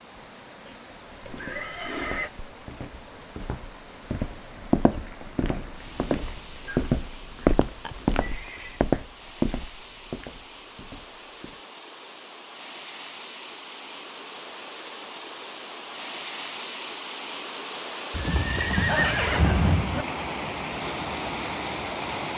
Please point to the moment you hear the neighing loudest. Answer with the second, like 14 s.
19 s.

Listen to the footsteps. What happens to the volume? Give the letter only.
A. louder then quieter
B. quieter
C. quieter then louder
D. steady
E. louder
A.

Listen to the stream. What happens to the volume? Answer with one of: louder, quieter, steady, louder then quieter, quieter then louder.
louder.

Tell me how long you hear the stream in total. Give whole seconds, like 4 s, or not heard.
22 s.